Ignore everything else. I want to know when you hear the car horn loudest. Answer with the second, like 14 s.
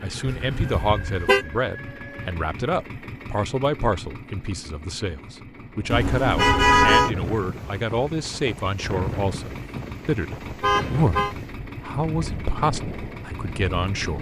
7 s.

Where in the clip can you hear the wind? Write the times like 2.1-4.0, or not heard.
5.6-14.1.